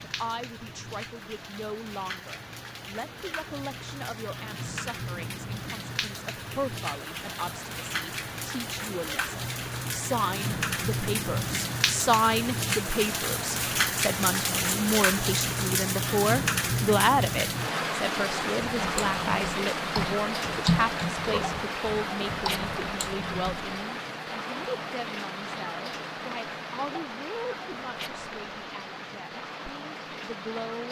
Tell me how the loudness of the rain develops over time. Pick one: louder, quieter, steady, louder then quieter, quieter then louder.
louder then quieter.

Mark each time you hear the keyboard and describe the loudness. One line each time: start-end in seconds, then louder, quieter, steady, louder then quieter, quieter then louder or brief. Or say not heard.
18.6-23.8 louder then quieter.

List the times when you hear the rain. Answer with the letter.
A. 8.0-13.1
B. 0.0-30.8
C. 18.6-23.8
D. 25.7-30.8
B.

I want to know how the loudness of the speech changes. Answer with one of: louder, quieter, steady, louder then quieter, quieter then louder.
louder then quieter.